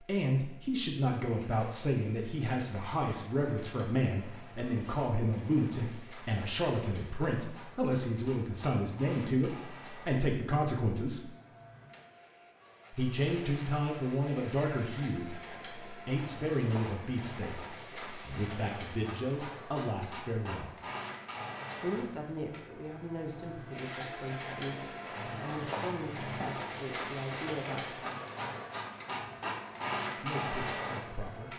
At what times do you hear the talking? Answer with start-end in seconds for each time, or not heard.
0.1-11.3, 12.9-20.8, 21.8-24.8, 25.4-28.0, 30.2-31.5.